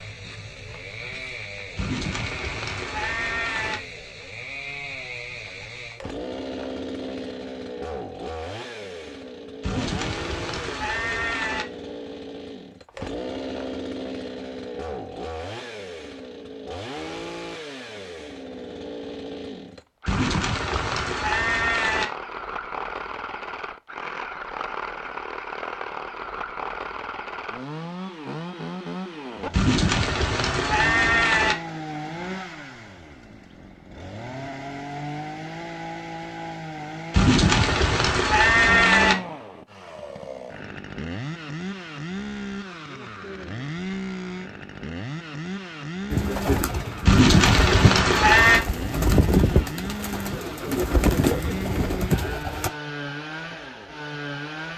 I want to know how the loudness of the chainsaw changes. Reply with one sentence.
The volume of the chainsaw stays about the same.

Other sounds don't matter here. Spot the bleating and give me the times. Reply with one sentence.
You can hear the bleating from 1.8 to 3.8 s, from 9.6 to 11.7 s, from 20.1 to 22.1 s, from 29.5 to 31.6 s, from 37.1 to 39.1 s and from 47.0 to 48.6 s.